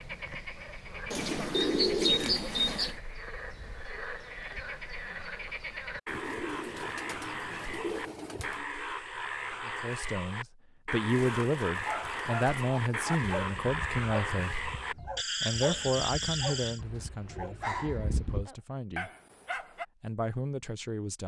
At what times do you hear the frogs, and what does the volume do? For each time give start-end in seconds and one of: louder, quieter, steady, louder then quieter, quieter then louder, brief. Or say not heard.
0.0-16.8 louder.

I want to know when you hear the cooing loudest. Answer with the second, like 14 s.
2 s.